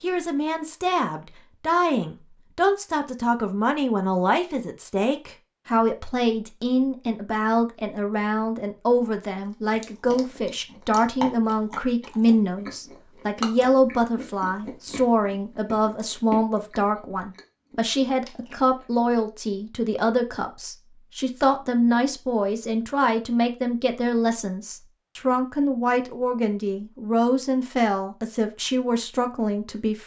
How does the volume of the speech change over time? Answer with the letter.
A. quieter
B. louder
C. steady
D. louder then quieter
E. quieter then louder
C.